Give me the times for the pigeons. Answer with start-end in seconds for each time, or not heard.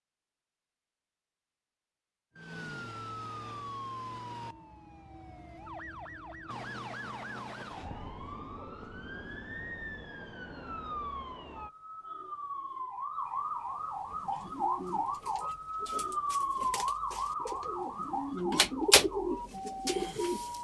14.1-20.6.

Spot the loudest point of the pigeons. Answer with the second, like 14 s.
19 s.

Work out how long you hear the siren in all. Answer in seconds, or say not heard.
18 s.